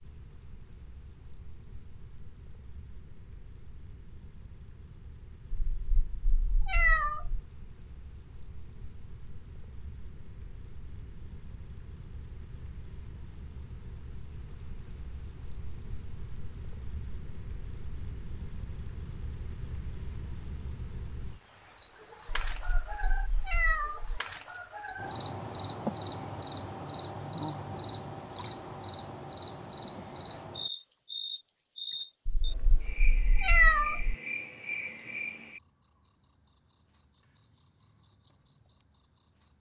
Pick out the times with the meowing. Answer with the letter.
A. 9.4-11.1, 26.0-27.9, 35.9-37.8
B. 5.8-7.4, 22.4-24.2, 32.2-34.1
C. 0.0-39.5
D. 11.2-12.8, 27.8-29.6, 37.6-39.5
B.